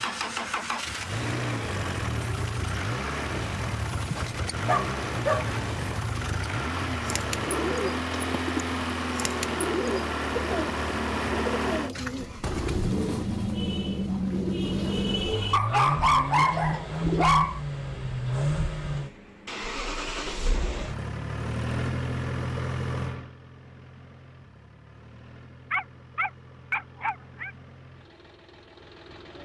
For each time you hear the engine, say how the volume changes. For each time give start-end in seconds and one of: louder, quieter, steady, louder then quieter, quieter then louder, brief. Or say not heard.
0.0-29.3 quieter.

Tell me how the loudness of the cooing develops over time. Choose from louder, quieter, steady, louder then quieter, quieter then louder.
steady.